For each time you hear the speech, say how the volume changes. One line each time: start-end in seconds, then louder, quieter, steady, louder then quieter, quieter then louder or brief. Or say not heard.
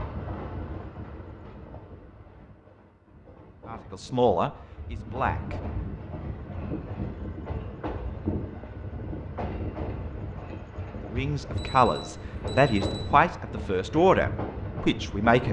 3.6-5.5 brief
11.1-15.4 steady.